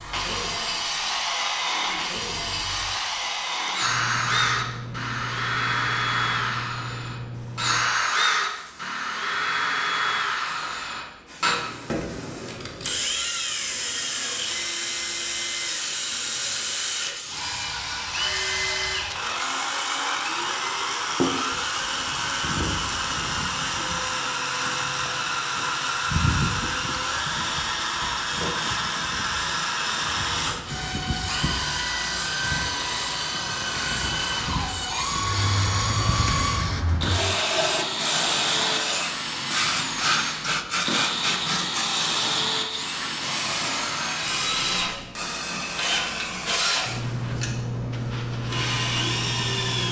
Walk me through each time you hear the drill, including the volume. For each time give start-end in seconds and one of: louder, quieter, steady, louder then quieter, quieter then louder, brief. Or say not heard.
0.0-49.8 steady.